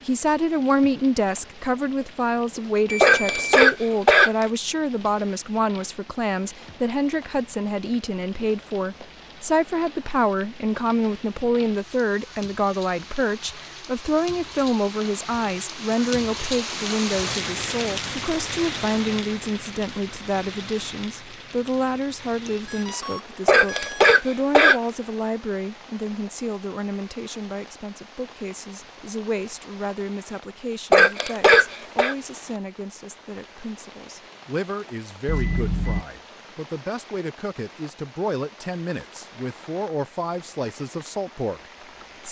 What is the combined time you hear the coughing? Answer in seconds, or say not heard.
4 s.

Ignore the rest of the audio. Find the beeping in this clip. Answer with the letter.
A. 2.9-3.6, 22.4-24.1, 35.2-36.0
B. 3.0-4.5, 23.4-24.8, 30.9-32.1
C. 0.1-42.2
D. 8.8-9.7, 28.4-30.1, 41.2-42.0
A.